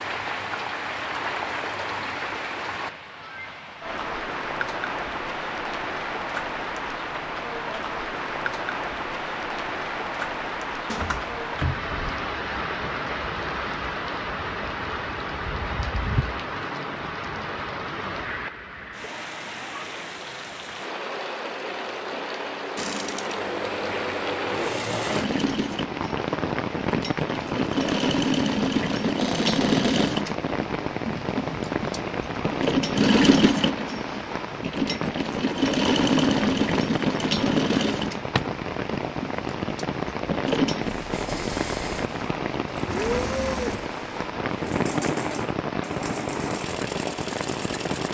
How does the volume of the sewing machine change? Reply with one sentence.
The loudness of the sewing machine goes up, then down.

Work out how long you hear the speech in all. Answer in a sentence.
The speech can't be heard in this clip.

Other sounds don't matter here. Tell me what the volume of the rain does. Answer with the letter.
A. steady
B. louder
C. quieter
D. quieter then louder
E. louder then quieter
A.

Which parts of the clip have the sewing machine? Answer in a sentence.
The sewing machine can be heard from 22.8 to 48.0 s.